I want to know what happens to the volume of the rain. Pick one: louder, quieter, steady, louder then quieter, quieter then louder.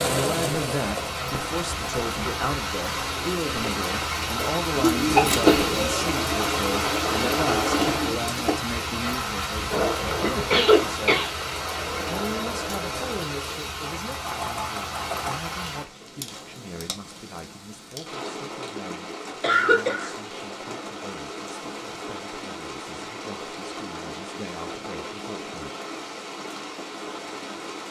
quieter.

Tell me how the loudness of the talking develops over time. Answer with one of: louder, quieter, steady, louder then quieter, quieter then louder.
quieter.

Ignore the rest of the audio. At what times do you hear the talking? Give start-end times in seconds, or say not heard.
0.0-11.1, 12.1-25.7.